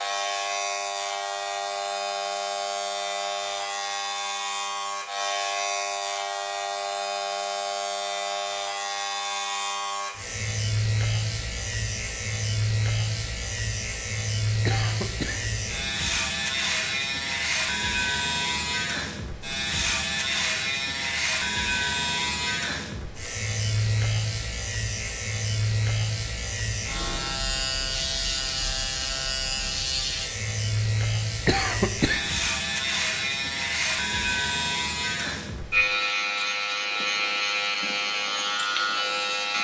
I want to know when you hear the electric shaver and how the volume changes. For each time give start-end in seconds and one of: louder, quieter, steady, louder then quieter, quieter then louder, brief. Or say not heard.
0.0-39.5 steady.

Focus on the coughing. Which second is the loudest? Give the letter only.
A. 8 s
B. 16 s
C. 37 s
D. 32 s
D.